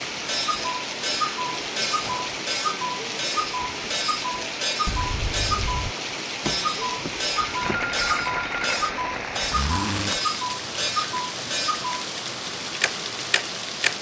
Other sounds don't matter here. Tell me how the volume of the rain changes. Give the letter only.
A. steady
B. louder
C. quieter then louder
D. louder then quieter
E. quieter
A.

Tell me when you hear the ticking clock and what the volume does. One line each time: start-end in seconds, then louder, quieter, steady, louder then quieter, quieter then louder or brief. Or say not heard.
0.1-12.0 steady
12.8-13.9 brief.